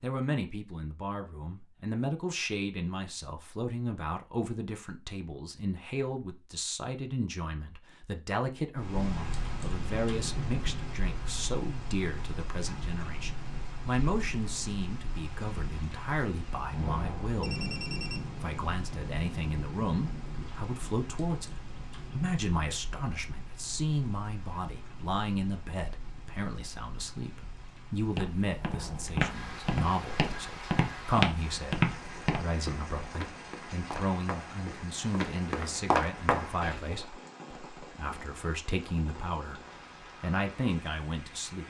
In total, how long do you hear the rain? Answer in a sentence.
The rain can be heard for 33 seconds in total.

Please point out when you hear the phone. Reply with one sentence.
The phone can be heard from 17.4 to 18.2 s.